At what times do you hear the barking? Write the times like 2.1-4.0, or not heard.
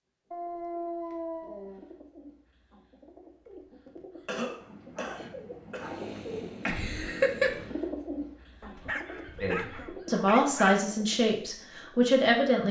0.3-1.9, 4.6-6.6, 8.6-10.8.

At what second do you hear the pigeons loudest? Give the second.
7 s.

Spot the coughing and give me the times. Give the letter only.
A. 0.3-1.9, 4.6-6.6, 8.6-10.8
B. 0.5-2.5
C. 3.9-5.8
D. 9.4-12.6
C.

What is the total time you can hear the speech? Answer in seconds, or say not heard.
3 s.